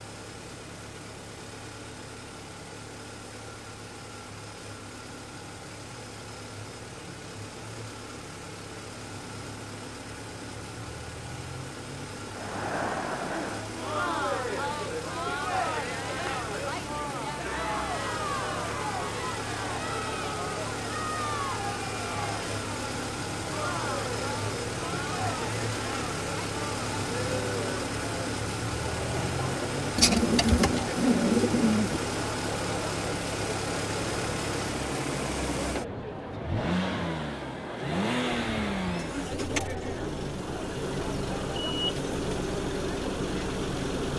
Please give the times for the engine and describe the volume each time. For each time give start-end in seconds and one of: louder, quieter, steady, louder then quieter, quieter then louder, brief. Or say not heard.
0.0-44.1 louder.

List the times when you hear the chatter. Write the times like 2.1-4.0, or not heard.
12.3-44.1.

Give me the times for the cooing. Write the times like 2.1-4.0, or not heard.
29.9-32.0.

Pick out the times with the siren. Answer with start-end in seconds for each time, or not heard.
not heard.